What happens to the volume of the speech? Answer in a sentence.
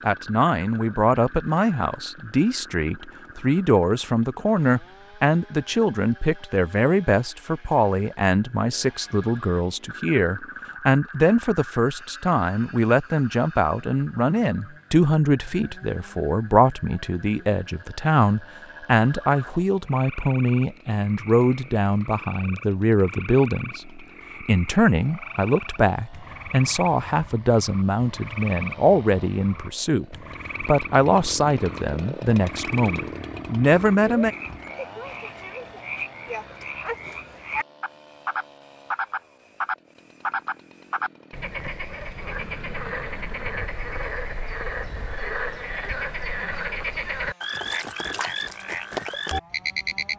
The volume of the speech stays about the same.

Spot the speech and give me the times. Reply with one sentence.
The speech can be heard from 0.0 to 34.4 s.